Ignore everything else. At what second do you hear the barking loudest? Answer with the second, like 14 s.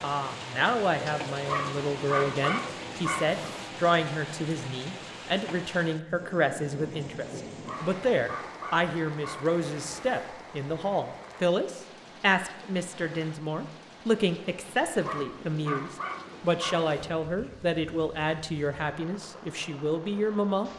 2 s.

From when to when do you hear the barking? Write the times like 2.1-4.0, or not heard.
1.4-3.6, 7.7-10.3, 15.0-16.9.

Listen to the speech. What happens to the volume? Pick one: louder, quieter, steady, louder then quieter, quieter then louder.
steady.